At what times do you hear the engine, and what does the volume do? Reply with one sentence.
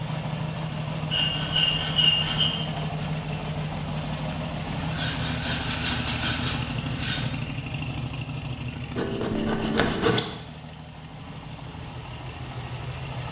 The engine can be heard from 0.0 to 13.2 s, getting quieter.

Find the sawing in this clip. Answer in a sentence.
You can hear the sawing from 1.1 to 2.5 s, from 4.8 to 7.2 s and from 8.9 to 10.2 s.